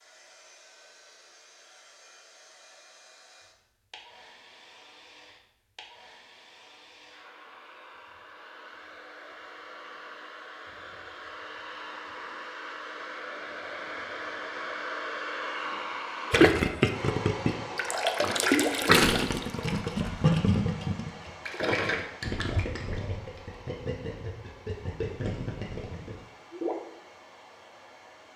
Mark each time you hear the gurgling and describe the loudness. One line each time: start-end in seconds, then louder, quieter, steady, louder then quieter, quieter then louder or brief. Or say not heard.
16.3-26.8 quieter.